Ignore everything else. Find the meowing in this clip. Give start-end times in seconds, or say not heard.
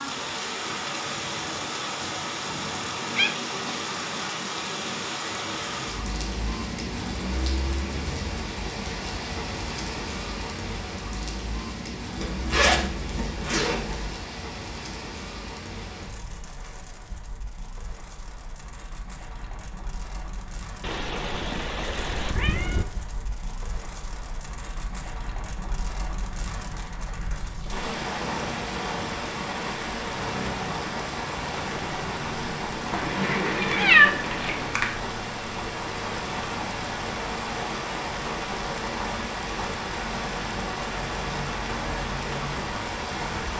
3.1-3.8, 20.8-22.9, 32.9-34.8.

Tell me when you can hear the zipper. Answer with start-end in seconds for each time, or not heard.
12.2-14.2.